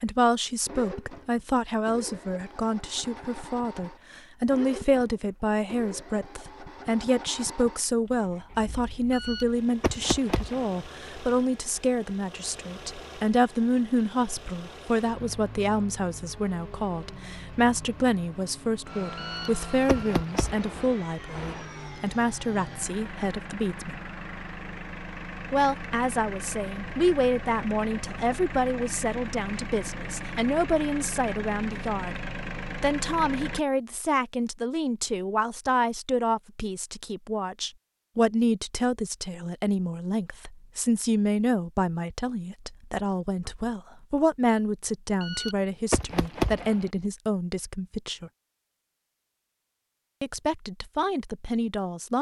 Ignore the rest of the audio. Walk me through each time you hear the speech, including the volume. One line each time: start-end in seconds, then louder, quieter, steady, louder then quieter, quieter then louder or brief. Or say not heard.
0.0-24.0 steady
25.5-48.3 steady
50.2-52.1 brief.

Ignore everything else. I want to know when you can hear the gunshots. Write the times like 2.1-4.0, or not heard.
9.1-10.8, 19.1-20.6, 45.2-46.9.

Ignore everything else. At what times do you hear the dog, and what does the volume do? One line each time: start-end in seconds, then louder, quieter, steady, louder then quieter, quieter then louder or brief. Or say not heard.
not heard.